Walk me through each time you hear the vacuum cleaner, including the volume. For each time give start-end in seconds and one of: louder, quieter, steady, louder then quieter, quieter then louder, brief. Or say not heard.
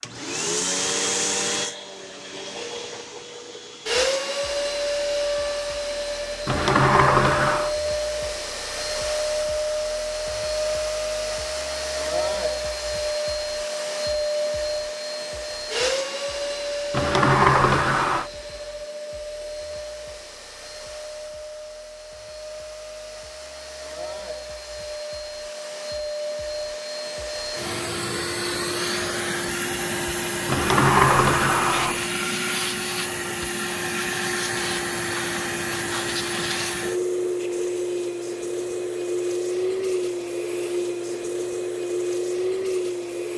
0.0-43.3 quieter then louder.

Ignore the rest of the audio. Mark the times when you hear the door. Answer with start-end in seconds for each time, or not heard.
6.5-7.8, 16.9-18.3, 30.4-32.0.